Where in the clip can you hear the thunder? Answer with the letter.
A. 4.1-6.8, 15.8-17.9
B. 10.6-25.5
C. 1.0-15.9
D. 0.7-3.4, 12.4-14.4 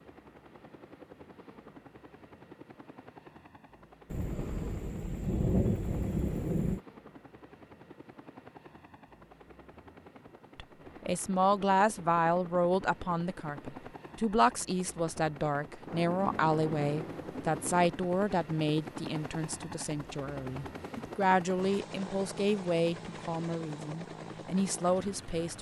A.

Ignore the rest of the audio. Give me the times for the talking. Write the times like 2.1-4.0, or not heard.
10.6-25.5.